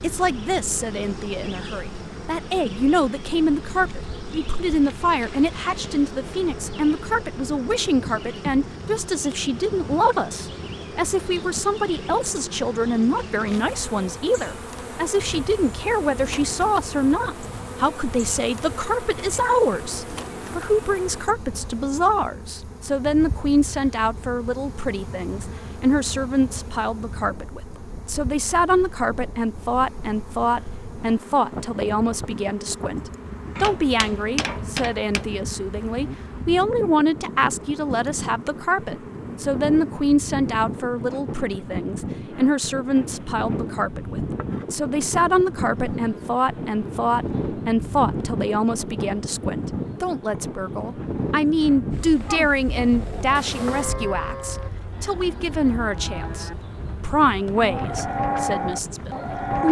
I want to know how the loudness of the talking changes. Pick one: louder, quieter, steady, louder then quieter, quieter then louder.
steady.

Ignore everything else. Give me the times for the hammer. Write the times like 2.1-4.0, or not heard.
33.5-35.4.